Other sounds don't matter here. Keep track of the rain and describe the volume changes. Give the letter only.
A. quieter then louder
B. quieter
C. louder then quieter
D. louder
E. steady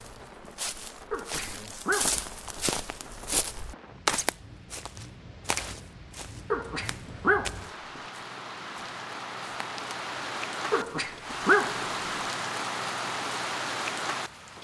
D.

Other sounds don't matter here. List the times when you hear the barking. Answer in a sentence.
The barking can be heard from 1.1 to 2.6 s, from 6.5 to 8.0 s and from 10.7 to 12.2 s.